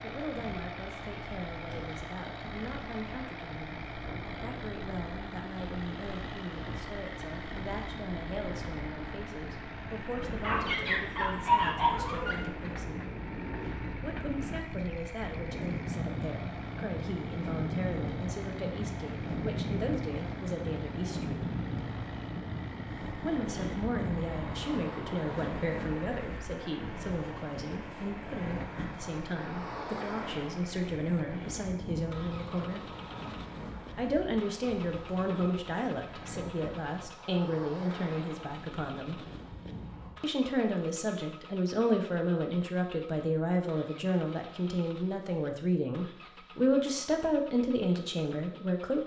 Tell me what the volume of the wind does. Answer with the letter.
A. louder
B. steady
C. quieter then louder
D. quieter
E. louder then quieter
E.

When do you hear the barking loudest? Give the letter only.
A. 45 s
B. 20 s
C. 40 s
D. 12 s
D.